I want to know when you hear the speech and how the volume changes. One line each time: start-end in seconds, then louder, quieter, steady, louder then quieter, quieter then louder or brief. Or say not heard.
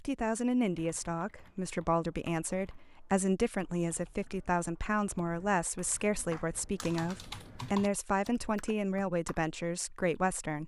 0.0-10.6 steady.